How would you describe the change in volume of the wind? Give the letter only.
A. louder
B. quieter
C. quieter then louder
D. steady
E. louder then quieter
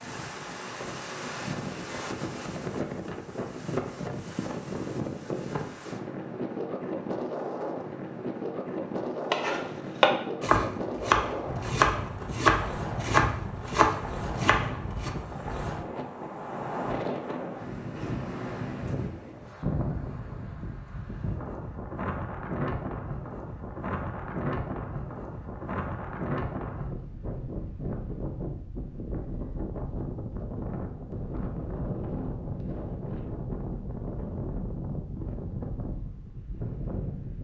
D.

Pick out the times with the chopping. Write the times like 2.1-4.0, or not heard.
9.3-15.1.